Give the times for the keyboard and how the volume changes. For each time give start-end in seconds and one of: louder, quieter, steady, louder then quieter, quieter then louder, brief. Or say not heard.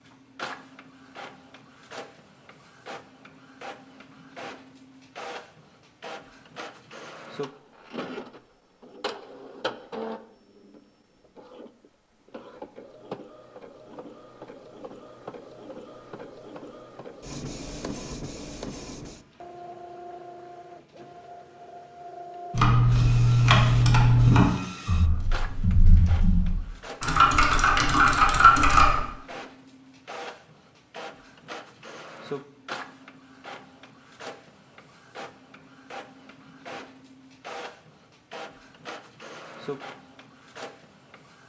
22.5-29.0 quieter then louder.